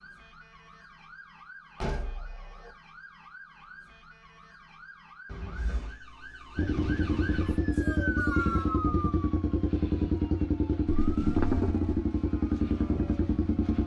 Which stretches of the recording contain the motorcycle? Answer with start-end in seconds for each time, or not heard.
6.5-13.8.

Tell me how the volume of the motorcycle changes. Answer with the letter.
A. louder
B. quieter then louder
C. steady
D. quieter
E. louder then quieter
C.